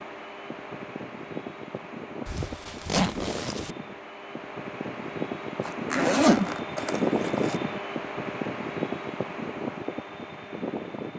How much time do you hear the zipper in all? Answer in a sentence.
The zipper can be heard for 3 seconds in total.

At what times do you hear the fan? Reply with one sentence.
You can hear the fan from 0.0 to 11.1 s.